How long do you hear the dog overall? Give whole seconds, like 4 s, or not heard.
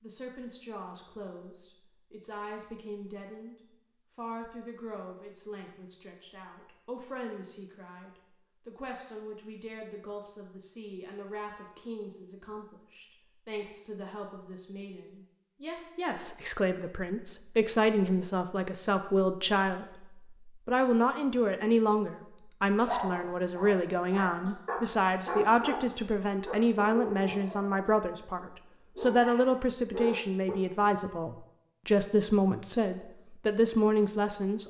8 s.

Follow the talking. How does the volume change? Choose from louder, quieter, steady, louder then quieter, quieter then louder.
louder.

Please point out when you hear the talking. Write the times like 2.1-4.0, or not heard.
0.0-3.5, 4.2-34.6.